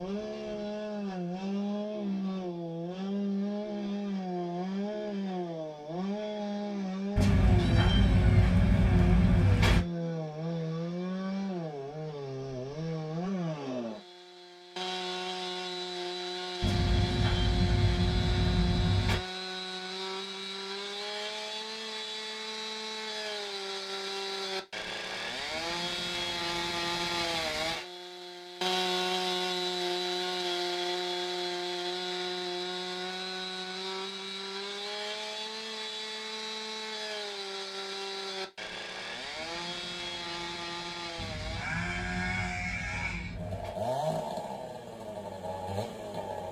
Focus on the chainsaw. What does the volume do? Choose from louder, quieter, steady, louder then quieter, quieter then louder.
steady.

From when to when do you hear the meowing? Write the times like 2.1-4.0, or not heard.
7.2-9.8, 16.6-19.2, 41.1-43.8.